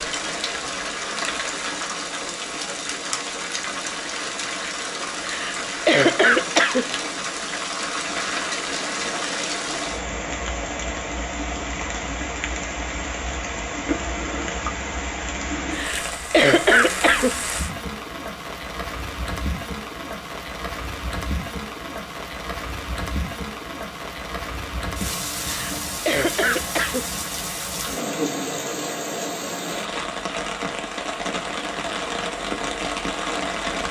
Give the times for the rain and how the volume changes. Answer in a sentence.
The rain can be heard from 0.0 to 33.8 s, at a steady volume.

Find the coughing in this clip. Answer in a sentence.
The coughing can be heard from 5.2 to 7.0 s, from 15.7 to 17.5 s and from 25.4 to 27.2 s.